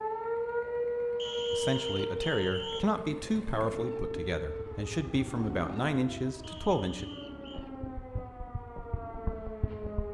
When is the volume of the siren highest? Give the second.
1 s.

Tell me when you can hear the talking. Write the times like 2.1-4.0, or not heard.
1.5-7.0.